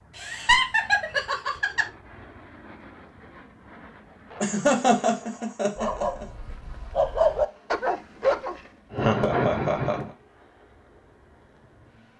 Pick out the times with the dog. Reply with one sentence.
You can hear the dog from 5.8 to 8.6 s.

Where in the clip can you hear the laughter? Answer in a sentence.
The laughter can be heard from 0.1 to 1.9 s, from 4.4 to 6.2 s and from 8.9 to 10.1 s.